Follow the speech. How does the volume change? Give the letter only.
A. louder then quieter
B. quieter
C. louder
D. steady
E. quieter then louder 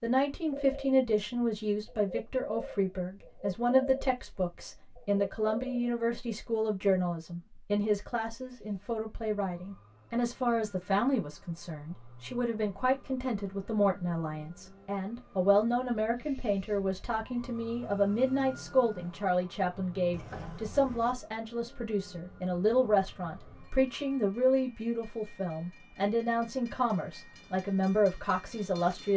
D.